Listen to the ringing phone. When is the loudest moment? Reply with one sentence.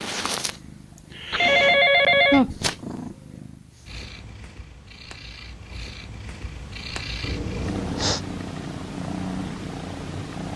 The volume of the ringing phone peaks at 2 seconds.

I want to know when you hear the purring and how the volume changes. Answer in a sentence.
You can hear the purring from 0.0 to 10.5 s, getting quieter then louder.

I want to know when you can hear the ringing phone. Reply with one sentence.
The ringing phone can be heard from 1.3 to 2.5 s and from 7.2 to 8.2 s.